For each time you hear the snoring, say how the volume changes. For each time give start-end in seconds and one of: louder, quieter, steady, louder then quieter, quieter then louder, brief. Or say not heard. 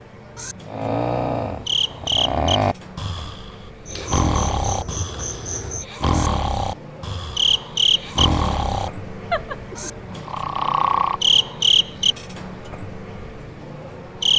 0.7-11.3 steady.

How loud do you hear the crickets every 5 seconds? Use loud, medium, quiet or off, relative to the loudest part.
medium, loud, loud.